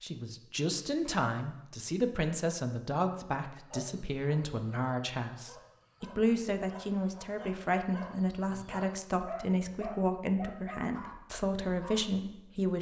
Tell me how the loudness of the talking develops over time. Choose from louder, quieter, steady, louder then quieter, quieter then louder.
steady.